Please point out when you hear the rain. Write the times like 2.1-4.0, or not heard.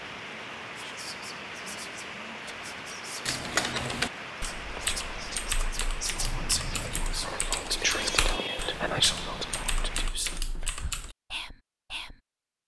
0.0-10.1.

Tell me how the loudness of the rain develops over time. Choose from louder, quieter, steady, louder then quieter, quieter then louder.
steady.